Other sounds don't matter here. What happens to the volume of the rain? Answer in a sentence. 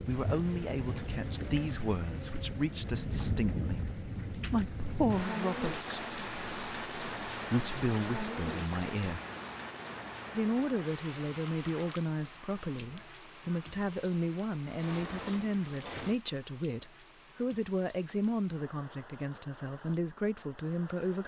The volume of the rain goes down.